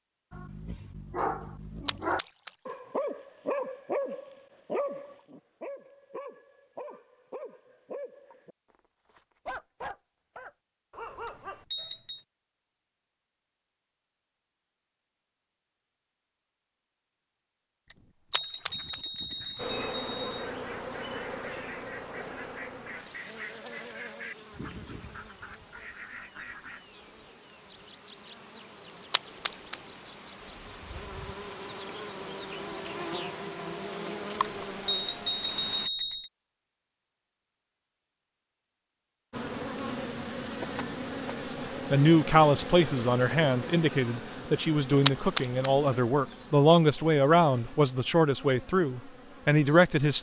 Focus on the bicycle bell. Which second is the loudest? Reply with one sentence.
The volume of the bicycle bell peaks at 36 seconds.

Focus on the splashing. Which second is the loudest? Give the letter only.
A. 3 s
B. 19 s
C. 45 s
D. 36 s
C.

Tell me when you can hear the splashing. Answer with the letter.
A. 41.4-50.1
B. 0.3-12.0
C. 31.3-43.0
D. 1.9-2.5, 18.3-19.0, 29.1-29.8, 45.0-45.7
D.